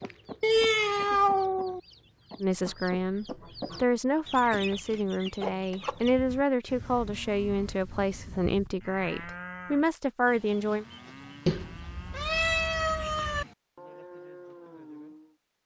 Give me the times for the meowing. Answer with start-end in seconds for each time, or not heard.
0.4-1.8, 11.4-13.4.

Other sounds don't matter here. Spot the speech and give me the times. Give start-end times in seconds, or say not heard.
2.4-10.8.